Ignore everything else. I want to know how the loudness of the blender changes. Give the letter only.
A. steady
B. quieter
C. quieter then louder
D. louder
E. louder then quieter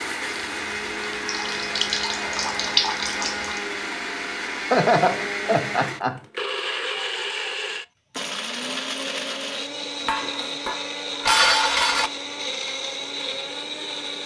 A.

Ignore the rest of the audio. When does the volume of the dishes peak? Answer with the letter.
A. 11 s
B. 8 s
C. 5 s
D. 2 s
A.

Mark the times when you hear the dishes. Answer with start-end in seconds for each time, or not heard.
10.1-12.1.